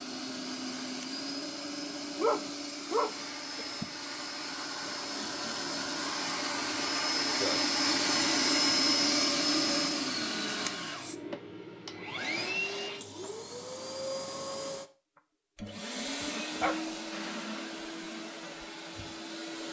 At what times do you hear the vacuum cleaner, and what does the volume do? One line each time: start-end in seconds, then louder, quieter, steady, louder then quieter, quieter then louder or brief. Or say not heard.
0.0-19.6 louder then quieter.